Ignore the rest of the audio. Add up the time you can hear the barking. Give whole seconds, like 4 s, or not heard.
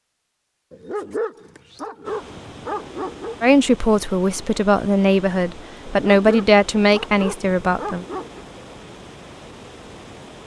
5 s.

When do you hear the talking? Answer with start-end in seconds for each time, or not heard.
3.4-8.1.